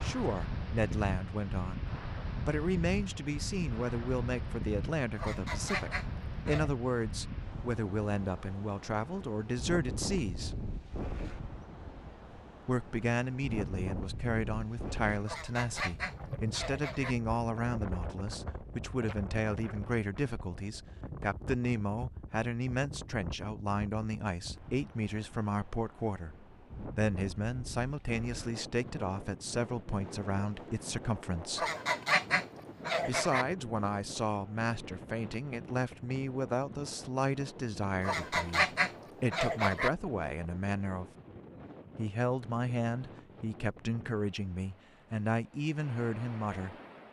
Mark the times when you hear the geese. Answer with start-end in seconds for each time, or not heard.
5.2-6.7, 15.2-17.1, 31.6-33.5, 38.0-39.9.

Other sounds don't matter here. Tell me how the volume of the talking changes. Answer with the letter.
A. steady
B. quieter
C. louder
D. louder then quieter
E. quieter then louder
A.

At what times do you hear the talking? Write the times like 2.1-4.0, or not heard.
0.0-10.6, 12.7-31.6, 33.0-41.1, 42.0-46.8.